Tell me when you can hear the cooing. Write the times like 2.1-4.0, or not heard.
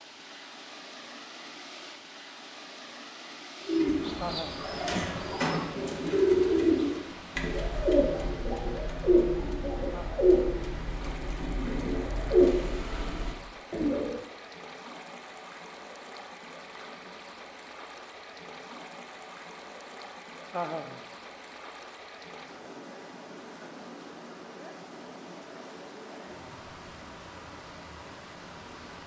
3.6-14.2.